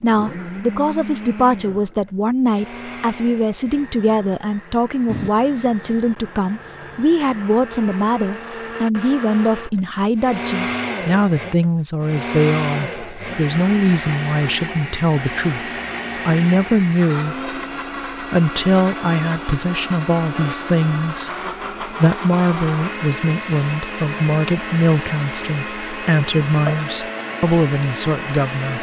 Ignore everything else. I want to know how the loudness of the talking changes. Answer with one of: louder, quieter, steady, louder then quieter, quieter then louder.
steady.